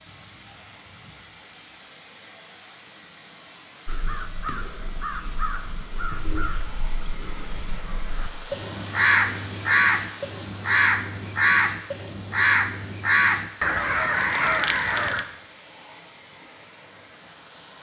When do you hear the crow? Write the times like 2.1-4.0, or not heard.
3.9-15.2.